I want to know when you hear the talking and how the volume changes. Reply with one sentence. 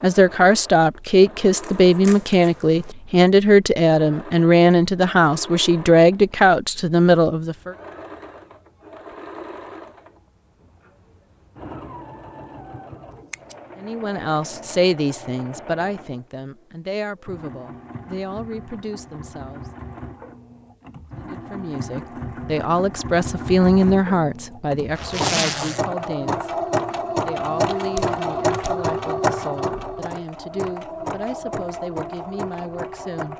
You can hear the talking from 0.0 to 7.8 s, at a steady volume; from 13.8 to 19.6 s, getting quieter; from 21.1 to 26.6 s, getting louder then quieter; and from 27.2 to 33.3 s, at a steady volume.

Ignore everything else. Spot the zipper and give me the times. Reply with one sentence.
You can hear the zipper from 24.9 to 25.9 s.